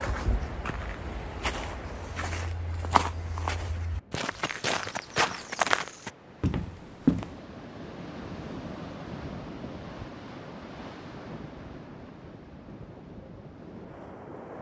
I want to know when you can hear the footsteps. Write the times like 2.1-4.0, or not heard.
0.0-7.4.